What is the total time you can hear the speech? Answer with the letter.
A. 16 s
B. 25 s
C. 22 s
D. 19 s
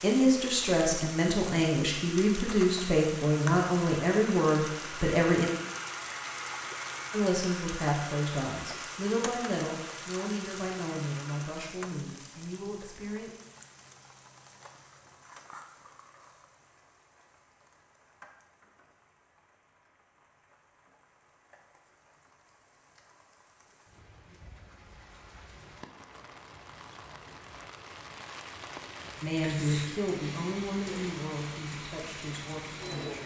A.